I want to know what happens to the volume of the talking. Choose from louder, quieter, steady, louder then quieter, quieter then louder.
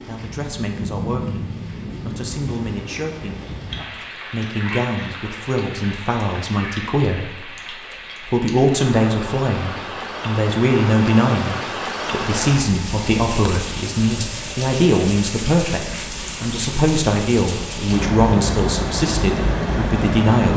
louder.